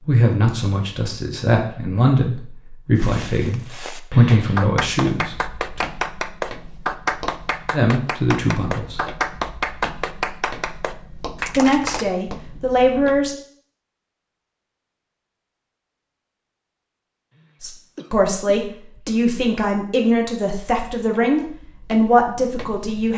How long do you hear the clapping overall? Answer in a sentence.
You can hear the clapping for 8 seconds altogether.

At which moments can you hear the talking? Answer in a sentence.
You can hear the talking from 0.1 to 5.8 s, from 7.7 to 9.1 s, from 11.6 to 13.3 s and from 17.6 to 23.1 s.